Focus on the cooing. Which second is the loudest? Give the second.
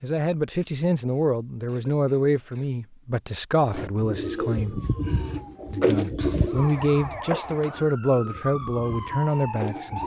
6 s.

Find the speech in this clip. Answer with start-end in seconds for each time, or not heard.
0.0-4.8, 5.7-10.0.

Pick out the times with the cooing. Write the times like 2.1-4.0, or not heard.
3.7-10.0.